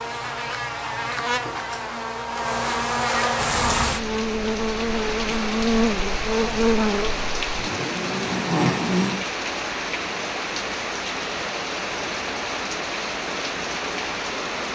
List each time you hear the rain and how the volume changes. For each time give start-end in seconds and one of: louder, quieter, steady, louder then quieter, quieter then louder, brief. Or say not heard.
3.4-14.7 steady.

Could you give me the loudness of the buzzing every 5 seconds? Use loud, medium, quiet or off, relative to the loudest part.
loud, loud, off.